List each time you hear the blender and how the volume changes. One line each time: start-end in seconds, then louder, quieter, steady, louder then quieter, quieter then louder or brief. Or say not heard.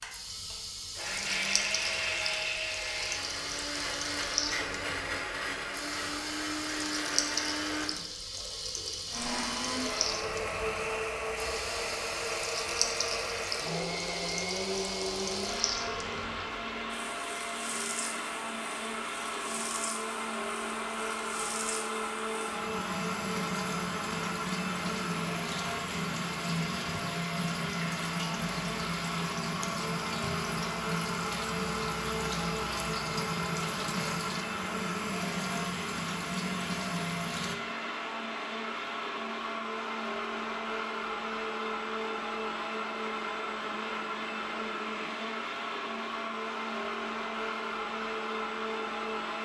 0.0-49.3 steady.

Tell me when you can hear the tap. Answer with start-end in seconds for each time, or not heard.
0.0-37.5.